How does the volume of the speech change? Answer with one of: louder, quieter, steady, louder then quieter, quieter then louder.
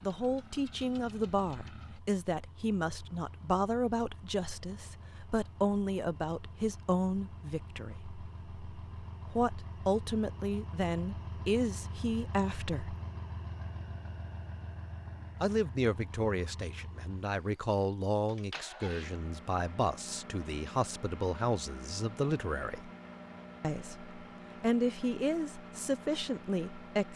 steady.